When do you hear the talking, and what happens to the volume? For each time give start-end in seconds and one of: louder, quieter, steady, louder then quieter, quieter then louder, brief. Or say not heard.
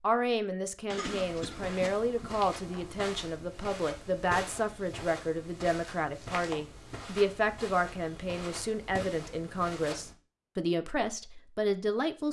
0.0-12.2 steady.